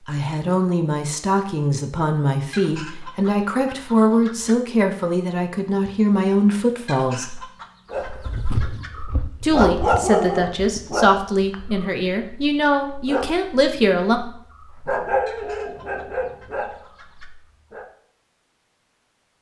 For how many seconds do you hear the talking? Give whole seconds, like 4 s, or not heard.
12 s.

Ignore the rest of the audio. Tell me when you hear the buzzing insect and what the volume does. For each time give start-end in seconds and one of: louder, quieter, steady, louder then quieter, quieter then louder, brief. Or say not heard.
not heard.